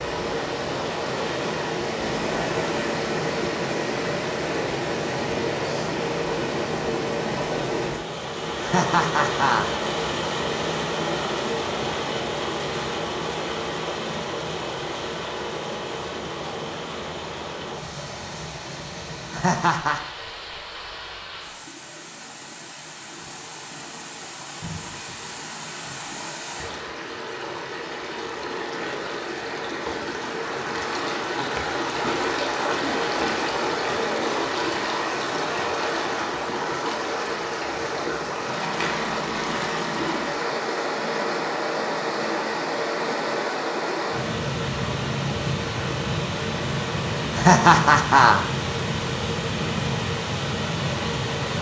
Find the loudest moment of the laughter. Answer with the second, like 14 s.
48 s.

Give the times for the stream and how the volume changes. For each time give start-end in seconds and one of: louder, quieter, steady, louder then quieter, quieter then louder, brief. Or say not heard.
0.0-51.5 quieter then louder.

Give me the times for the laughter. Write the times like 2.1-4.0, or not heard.
8.6-9.7, 19.3-20.0, 47.4-48.4.